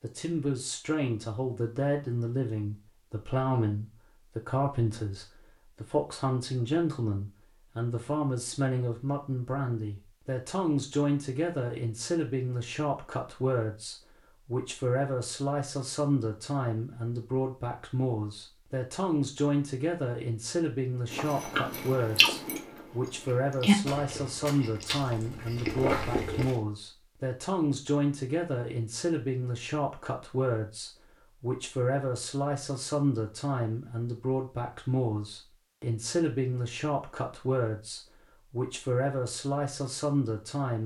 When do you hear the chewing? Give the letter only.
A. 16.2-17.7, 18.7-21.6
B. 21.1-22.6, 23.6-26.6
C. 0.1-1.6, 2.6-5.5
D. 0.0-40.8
B.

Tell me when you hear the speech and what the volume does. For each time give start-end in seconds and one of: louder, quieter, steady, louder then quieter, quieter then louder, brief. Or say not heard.
0.0-40.8 steady.